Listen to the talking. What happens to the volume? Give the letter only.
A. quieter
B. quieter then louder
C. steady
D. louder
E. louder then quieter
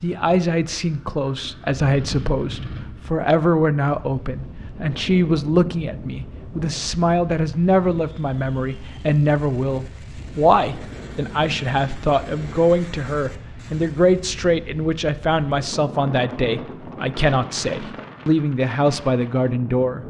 C.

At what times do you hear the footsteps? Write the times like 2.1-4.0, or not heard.
not heard.